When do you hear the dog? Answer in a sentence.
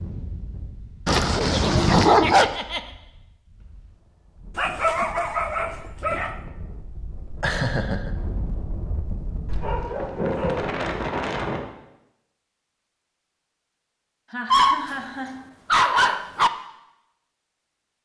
The dog can be heard from 1.1 to 2.5 s, from 4.5 to 6.3 s, from 9.4 to 10.8 s and from 14.5 to 16.5 s.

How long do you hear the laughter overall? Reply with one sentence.
The laughter can be heard for 3 seconds in total.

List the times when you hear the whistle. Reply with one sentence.
The whistle can't be heard in this clip.